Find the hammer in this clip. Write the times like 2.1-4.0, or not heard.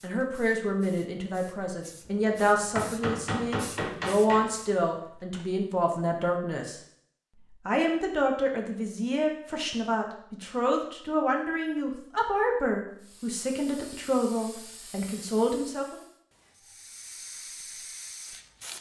2.0-4.5.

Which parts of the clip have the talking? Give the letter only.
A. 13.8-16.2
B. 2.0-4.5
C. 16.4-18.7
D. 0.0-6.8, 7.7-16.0
D.